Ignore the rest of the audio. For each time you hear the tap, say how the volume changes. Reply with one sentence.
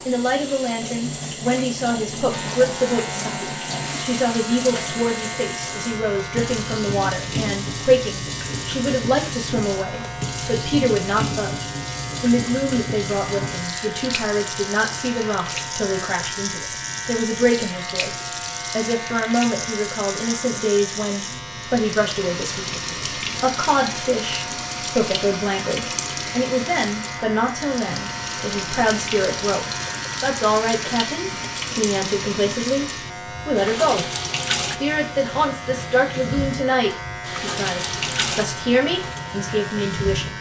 You can hear the tap from 0.0 to 40.3 s, at a steady volume.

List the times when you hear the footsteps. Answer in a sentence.
You can't hear the footsteps here.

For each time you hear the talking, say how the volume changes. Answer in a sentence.
You can hear the talking from 0.1 to 40.3 s, at a steady volume.